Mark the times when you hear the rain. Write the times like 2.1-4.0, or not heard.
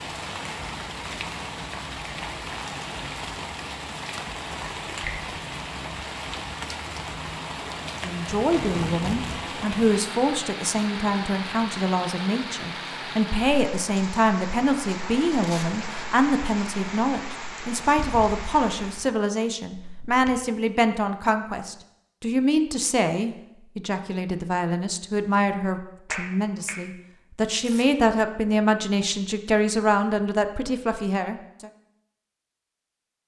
0.0-19.1.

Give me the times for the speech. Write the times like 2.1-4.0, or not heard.
8.0-31.7.